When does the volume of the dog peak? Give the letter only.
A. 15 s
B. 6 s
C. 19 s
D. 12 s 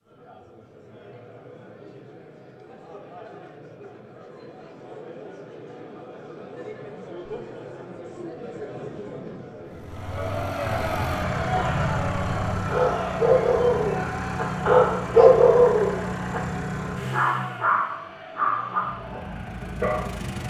A.